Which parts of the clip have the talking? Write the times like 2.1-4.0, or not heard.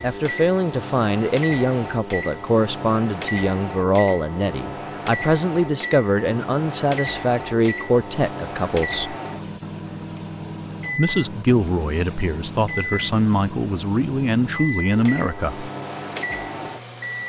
0.0-9.2, 10.9-15.7.